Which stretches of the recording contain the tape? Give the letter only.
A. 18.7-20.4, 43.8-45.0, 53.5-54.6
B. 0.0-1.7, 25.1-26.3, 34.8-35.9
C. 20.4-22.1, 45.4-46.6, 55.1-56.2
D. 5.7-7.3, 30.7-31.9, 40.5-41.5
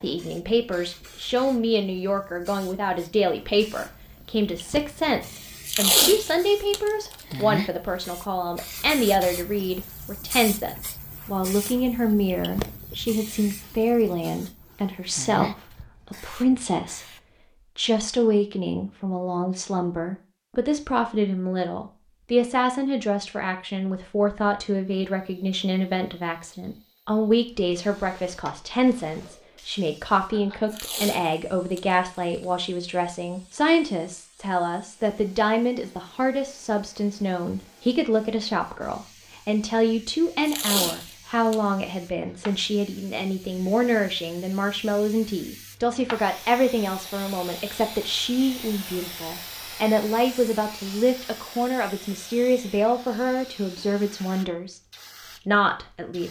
D.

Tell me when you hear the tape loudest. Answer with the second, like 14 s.
6 s.